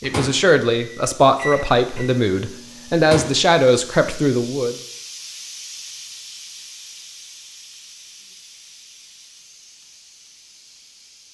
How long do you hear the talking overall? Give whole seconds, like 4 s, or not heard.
5 s.